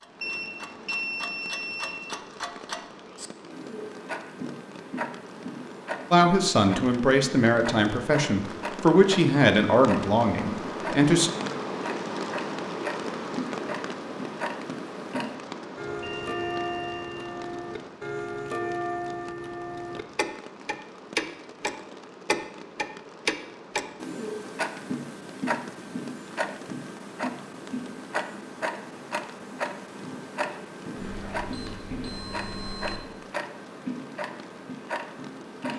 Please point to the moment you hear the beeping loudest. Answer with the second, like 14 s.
1 s.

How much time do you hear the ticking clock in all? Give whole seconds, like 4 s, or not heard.
36 s.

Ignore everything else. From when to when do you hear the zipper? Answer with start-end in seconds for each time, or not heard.
not heard.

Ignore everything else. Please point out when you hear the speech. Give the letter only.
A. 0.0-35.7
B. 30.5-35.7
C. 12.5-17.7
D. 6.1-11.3
D.